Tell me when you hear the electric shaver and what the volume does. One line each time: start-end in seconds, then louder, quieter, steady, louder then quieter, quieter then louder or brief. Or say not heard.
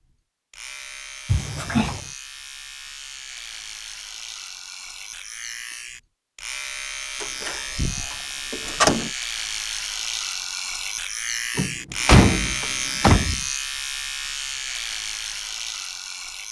0.0-16.4 louder.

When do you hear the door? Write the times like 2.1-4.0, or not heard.
1.2-2.1, 7.2-9.1, 11.6-13.4.